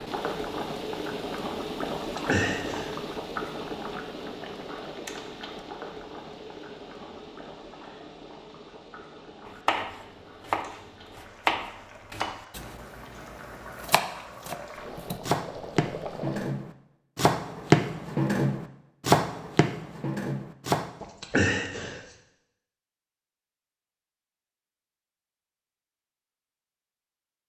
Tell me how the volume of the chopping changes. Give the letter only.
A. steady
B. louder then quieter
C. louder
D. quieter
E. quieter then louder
E.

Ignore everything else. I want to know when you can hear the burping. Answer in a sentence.
You can hear the burping from 1.9 to 3.0 s and from 21.0 to 22.0 s.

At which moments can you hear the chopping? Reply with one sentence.
The chopping can be heard from 9.4 to 20.9 s.